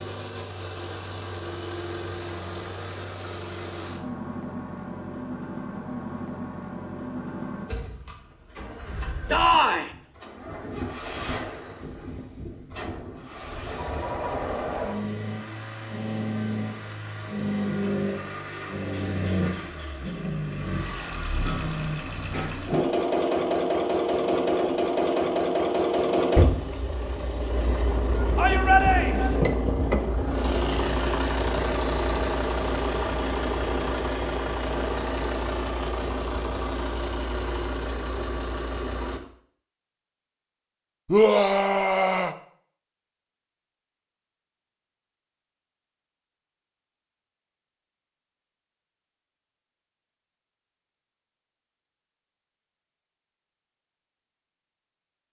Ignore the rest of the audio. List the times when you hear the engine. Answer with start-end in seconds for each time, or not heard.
0.0-39.2.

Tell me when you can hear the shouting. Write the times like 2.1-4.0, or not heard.
9.3-9.9, 28.4-29.4, 41.0-42.4.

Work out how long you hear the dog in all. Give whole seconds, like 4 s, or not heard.
not heard.